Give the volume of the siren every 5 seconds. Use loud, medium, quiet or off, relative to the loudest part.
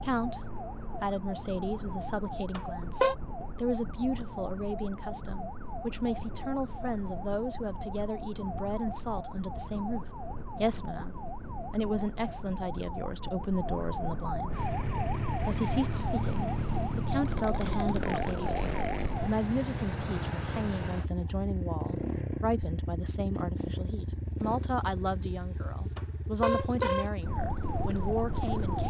medium, medium, loud, loud, off, loud.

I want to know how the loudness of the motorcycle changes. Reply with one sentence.
The loudness of the motorcycle goes down.